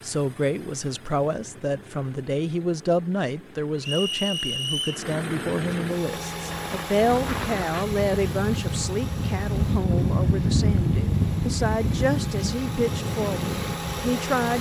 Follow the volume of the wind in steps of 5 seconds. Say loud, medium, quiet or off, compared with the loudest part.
off, loud, loud.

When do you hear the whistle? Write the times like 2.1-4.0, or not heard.
3.8-5.0.